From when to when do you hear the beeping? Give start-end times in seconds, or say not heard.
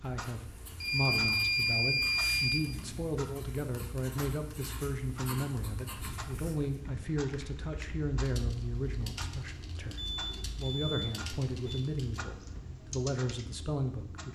0.8-2.6, 10.1-11.8.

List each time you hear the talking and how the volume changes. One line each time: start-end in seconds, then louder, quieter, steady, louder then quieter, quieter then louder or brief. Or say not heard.
0.0-14.3 steady.